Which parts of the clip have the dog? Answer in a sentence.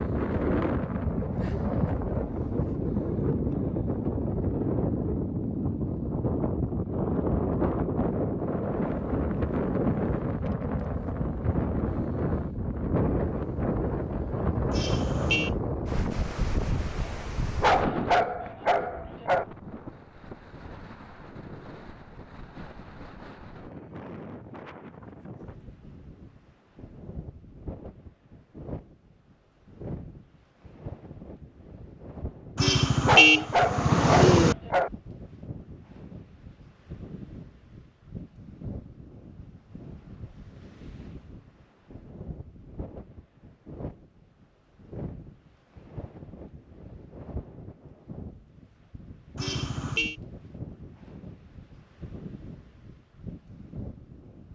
You can hear the dog from 17.6 to 19.4 s and from 33.0 to 34.9 s.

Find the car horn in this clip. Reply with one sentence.
The car horn can be heard from 14.7 to 15.6 s, from 32.5 to 34.5 s and from 49.4 to 50.1 s.